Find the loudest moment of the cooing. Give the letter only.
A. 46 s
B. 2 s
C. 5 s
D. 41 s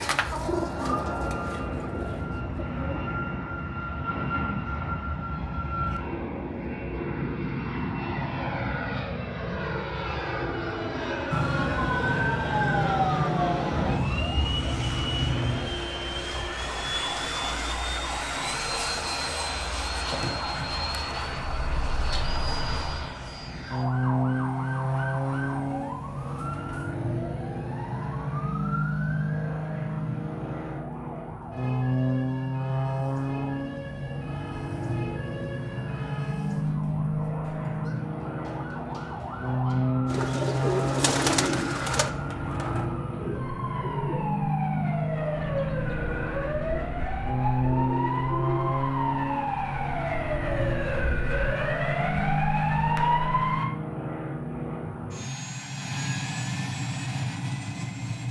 D.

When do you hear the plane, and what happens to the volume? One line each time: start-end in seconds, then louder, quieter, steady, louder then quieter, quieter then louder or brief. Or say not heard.
0.0-58.2 steady.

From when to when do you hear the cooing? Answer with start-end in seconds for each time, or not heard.
0.0-3.0, 40.0-48.8.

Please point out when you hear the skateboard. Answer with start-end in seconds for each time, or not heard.
not heard.